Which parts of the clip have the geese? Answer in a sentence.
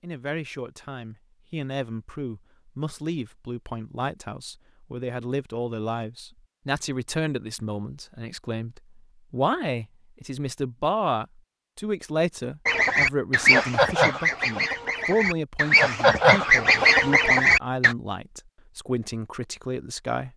The geese can be heard from 12.7 to 17.9 s.